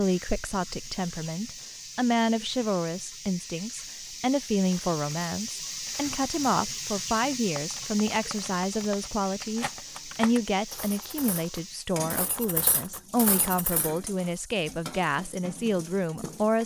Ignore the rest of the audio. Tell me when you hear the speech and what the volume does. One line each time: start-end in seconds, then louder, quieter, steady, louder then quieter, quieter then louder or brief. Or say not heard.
0.0-16.6 steady.